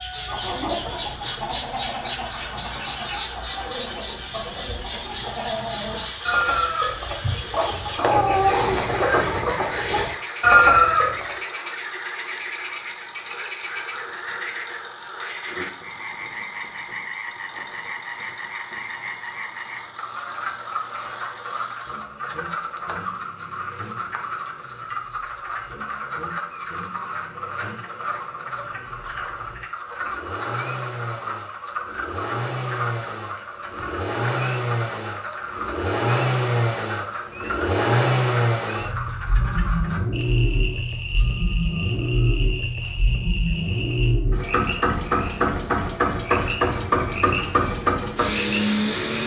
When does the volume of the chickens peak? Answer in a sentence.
The loudest moment of the chickens is at 11 seconds.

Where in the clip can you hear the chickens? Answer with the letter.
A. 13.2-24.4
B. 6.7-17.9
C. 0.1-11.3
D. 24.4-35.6
C.